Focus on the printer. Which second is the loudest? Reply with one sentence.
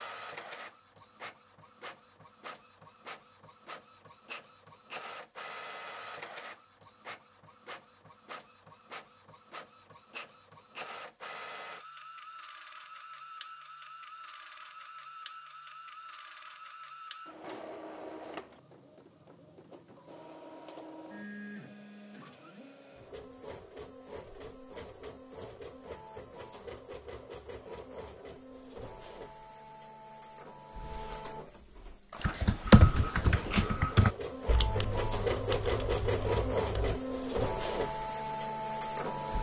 The loudest moment of the printer is at 36 seconds.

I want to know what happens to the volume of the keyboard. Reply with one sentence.
The loudness of the keyboard goes down.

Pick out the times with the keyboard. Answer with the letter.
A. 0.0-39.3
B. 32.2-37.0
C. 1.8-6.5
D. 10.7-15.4
B.